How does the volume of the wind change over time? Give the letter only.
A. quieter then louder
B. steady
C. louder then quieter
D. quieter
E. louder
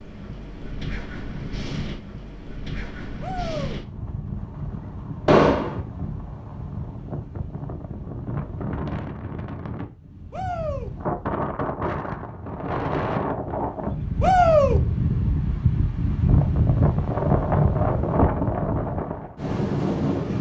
E.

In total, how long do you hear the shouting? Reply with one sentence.
You can hear the shouting for 2 seconds altogether.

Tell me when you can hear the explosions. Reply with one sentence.
The explosions can be heard from 5.2 to 5.8 s.